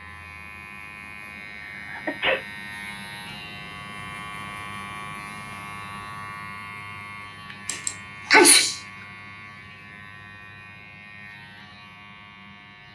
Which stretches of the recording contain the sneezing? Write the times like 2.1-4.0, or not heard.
1.8-2.4, 7.7-8.8.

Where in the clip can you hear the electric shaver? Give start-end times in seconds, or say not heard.
0.0-12.8.